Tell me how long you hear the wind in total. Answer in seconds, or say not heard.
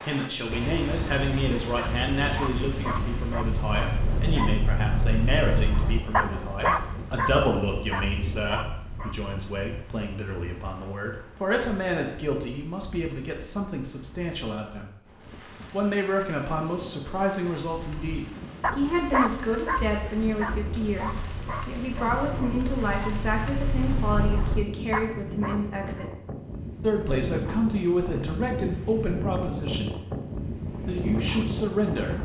32 s.